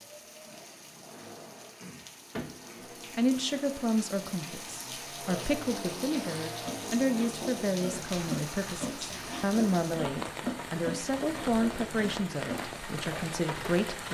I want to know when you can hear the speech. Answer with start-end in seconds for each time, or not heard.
3.1-14.0.